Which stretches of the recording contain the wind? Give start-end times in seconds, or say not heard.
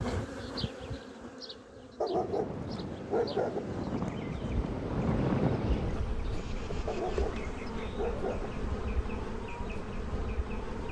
2.1-10.8.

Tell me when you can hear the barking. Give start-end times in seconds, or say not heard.
2.0-3.6, 6.8-8.5.